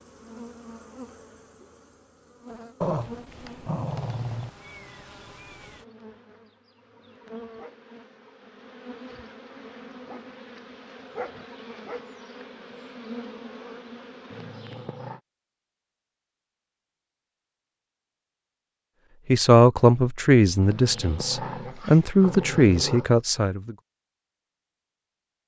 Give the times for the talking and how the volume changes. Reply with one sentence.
You can hear the talking from 19.2 to 23.8 s, getting quieter then louder.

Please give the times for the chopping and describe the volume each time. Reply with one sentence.
You can't hear the chopping here.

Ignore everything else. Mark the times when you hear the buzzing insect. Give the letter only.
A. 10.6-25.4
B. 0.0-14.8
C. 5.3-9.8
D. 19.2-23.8
B.